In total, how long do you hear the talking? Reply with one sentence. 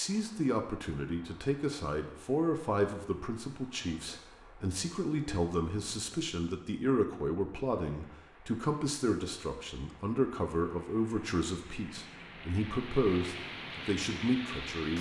You can hear the talking for 15 seconds altogether.